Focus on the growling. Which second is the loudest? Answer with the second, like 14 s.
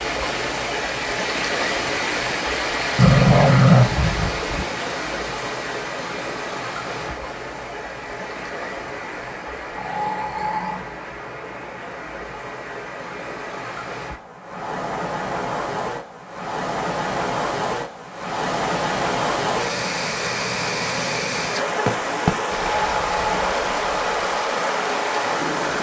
4 s.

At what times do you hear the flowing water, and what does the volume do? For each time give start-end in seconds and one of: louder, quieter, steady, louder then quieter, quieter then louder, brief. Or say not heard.
0.0-25.7 quieter then louder.